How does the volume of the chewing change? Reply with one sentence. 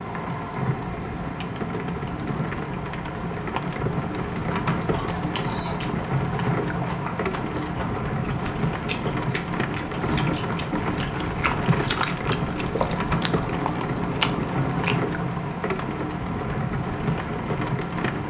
The volume of the chewing goes up.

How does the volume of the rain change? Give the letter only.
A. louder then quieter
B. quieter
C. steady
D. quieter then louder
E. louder
C.